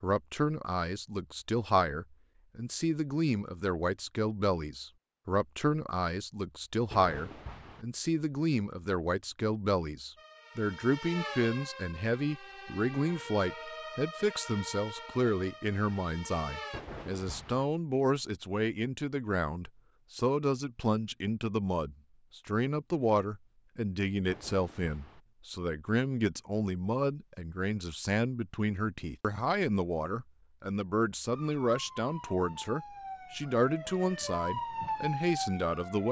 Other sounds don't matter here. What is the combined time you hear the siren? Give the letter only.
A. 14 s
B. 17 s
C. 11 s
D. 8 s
C.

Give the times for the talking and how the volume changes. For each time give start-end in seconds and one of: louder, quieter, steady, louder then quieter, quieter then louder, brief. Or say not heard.
0.0-36.0 steady.